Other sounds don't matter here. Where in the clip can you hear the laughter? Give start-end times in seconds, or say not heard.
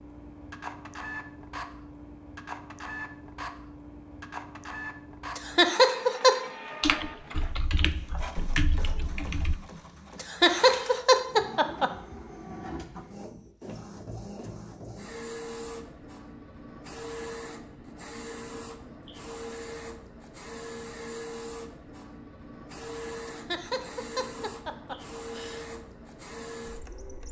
5.3-6.3, 10.2-11.9, 23.2-25.6.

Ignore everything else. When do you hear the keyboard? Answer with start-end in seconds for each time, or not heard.
6.8-9.6.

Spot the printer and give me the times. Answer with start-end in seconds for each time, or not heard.
0.0-27.2.